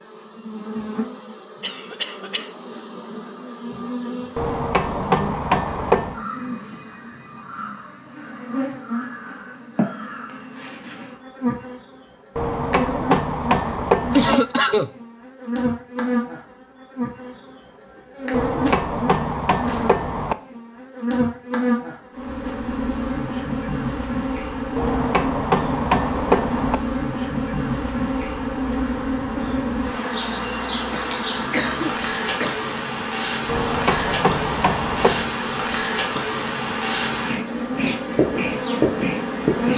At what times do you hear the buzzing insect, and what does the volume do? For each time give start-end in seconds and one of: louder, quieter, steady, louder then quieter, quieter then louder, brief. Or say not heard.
0.0-39.7 louder.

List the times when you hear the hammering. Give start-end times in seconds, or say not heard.
4.3-6.2, 12.3-14.3, 18.3-20.4, 24.8-26.8, 33.5-35.3.